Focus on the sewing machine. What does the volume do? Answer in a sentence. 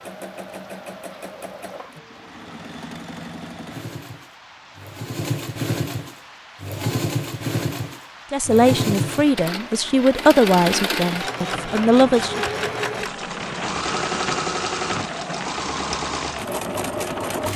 The loudness of the sewing machine goes up.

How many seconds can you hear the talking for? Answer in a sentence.
You can hear the talking for 4 seconds altogether.